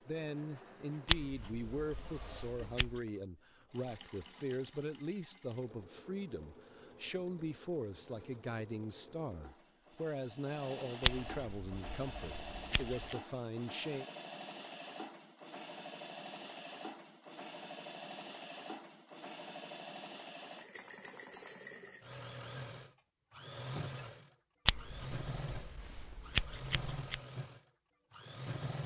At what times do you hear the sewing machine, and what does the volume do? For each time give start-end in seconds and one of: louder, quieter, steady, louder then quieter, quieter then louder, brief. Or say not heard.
0.0-28.8 louder.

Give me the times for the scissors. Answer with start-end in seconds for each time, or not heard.
1.1-3.0, 11.0-13.2, 24.6-27.2.